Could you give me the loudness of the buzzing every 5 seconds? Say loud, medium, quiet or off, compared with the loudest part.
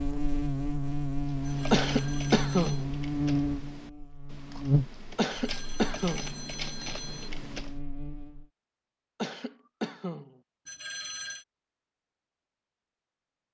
loud, quiet, off.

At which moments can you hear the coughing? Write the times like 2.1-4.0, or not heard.
1.7-2.9, 5.2-6.3, 9.2-10.3.